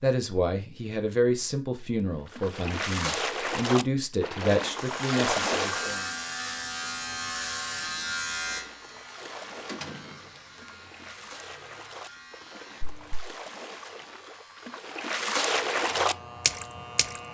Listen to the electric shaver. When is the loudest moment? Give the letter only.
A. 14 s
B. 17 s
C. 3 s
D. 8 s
D.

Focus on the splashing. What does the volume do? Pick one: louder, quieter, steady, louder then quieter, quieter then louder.
quieter then louder.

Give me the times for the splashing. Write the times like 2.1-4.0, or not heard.
2.2-6.1, 8.3-17.2.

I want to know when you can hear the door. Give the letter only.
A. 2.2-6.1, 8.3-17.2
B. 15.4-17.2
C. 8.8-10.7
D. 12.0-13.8
C.